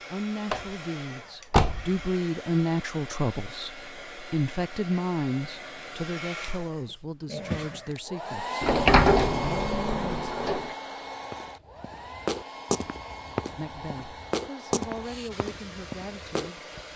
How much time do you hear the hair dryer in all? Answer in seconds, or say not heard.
17 s.